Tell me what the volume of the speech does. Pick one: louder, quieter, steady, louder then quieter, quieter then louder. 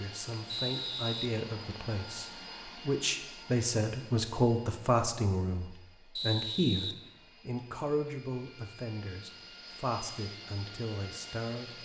louder then quieter.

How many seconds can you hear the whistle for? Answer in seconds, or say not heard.
2 s.